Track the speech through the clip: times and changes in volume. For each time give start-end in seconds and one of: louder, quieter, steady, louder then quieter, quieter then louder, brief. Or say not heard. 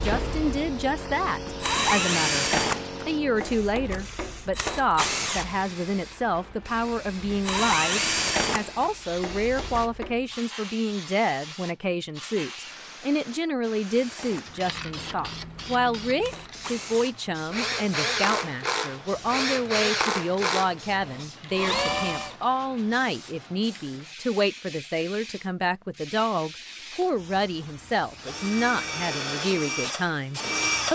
0.0-30.9 steady.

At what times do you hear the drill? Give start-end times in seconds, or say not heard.
0.0-10.2, 13.8-22.4, 27.0-30.9.